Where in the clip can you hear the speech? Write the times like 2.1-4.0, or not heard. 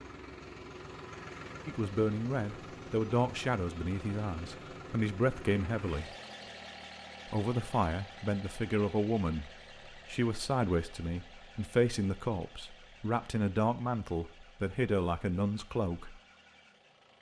1.6-6.1, 7.2-16.2.